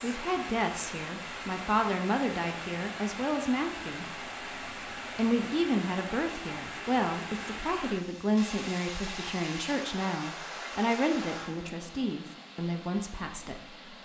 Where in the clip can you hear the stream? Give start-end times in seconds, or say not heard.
0.0-14.0.